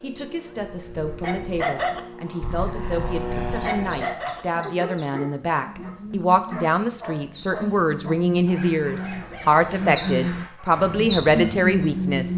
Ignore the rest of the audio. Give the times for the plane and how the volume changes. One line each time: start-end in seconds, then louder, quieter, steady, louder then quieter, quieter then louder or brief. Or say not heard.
0.0-4.2 louder.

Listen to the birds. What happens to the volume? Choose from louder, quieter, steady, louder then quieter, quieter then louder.
louder.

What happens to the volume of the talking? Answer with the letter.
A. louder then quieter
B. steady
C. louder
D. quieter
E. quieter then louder
C.